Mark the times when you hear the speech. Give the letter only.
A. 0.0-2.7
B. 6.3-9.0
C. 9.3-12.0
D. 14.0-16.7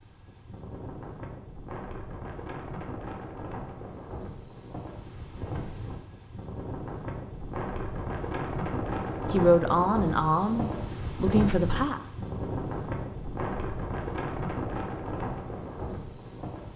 C.